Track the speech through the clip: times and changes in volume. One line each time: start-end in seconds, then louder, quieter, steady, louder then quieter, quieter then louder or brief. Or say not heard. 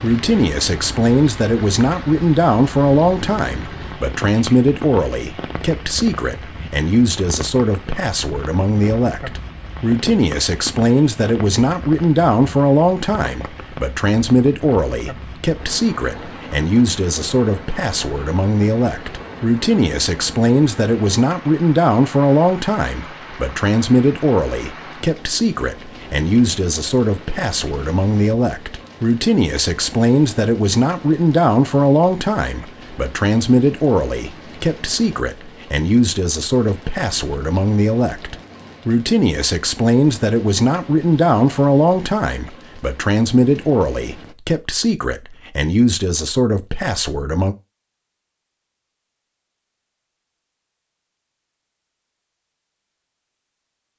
0.0-47.5 steady.